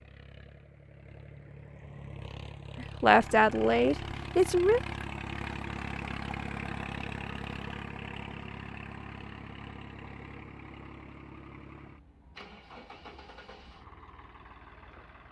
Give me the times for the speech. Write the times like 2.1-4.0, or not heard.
2.8-4.8.